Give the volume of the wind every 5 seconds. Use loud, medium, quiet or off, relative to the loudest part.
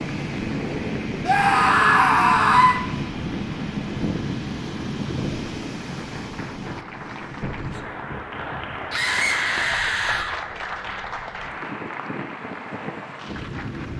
loud, medium, medium.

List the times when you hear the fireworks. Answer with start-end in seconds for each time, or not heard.
not heard.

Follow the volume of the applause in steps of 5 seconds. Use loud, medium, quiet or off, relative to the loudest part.
medium, loud, loud.